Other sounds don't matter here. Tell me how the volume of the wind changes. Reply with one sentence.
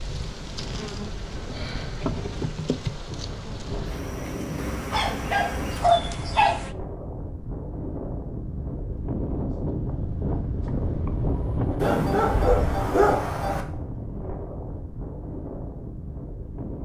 The loudness of the wind goes up, then down.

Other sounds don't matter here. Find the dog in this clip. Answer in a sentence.
The dog can be heard from 4.9 to 6.5 s and from 11.8 to 13.7 s.